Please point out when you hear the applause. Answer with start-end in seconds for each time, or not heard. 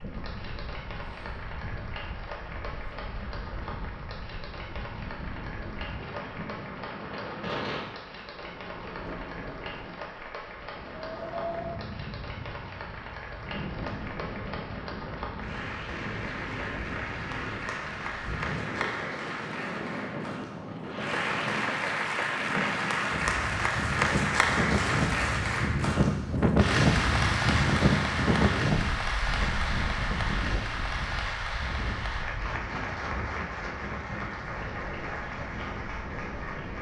0.0-36.7.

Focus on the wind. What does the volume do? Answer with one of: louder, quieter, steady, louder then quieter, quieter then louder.
louder then quieter.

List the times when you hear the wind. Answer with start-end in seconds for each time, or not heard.
0.0-36.7.